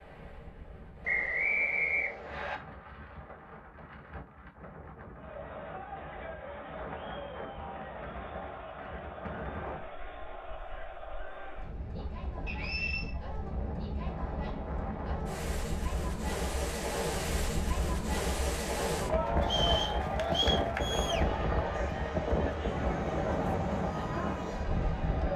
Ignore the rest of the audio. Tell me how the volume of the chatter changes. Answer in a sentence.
The loudness of the chatter goes up.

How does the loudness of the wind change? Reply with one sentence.
The loudness of the wind goes up.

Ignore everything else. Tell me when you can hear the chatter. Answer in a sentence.
The chatter can be heard from 5.1 to 25.3 s.